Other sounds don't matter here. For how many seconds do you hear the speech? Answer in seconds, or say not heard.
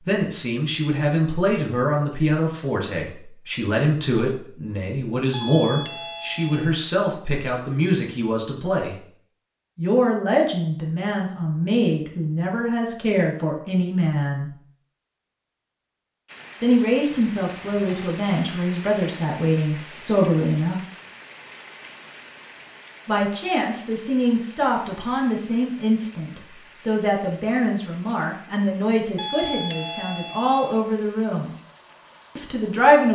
27 s.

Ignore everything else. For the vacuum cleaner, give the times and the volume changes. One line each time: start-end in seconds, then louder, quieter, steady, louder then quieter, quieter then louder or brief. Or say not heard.
not heard.